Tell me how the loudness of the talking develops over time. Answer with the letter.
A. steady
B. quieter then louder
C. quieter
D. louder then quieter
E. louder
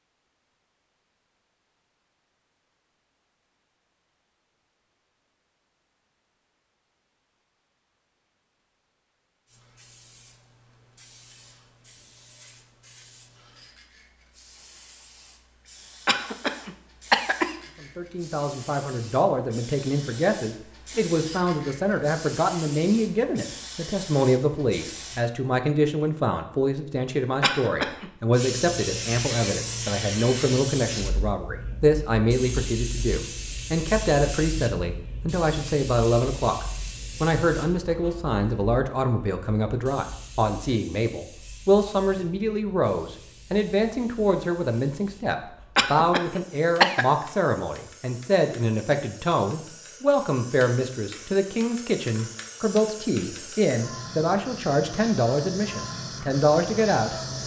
A.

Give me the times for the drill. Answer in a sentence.
The drill can't be heard in this clip.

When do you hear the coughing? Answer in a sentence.
The coughing can be heard from 16.1 to 17.6 s, from 27.4 to 28.1 s and from 45.8 to 47.0 s.